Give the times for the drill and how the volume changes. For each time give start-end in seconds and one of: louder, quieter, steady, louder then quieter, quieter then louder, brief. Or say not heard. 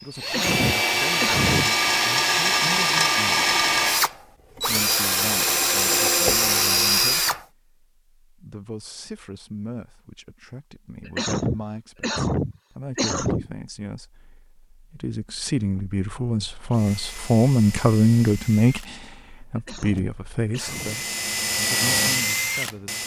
0.1-7.5 steady
16.7-23.0 quieter then louder.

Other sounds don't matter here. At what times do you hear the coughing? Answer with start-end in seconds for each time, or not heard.
0.2-1.7, 11.1-13.5, 19.6-21.1.